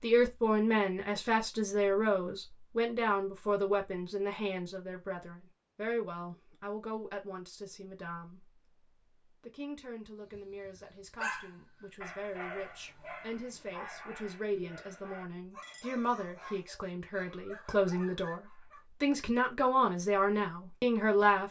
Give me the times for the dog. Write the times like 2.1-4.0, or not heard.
10.3-18.9.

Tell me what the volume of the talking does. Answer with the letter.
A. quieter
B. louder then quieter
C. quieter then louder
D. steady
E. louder
C.